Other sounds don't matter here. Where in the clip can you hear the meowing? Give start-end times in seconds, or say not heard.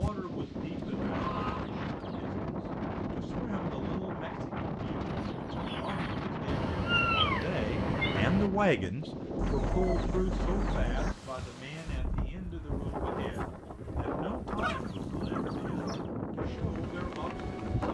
6.5-8.5.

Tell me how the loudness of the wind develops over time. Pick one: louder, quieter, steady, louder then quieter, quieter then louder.
steady.